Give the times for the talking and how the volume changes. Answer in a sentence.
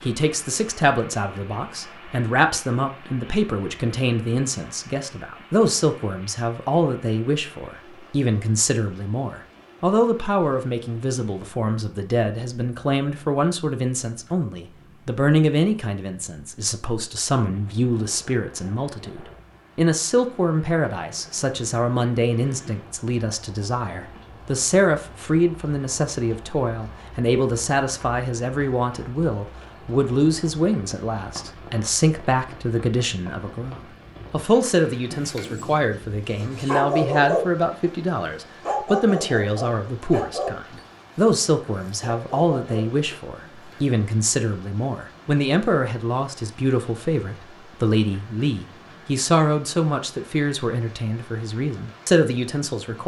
The talking can be heard from 0.0 to 53.0 s, at a steady volume.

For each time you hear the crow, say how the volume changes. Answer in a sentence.
The crow can't be heard in this clip.